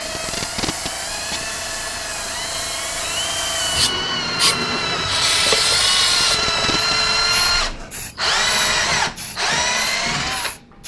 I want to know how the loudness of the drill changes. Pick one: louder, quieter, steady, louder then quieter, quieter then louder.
louder.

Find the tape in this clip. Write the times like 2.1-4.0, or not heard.
0.0-1.5, 6.0-7.5.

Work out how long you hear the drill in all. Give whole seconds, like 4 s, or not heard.
11 s.